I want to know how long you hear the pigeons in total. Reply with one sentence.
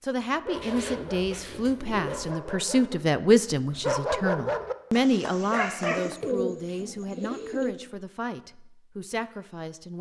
You can hear the pigeons for 4 seconds altogether.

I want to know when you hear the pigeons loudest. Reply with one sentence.
The volume of the pigeons peaks at 6 seconds.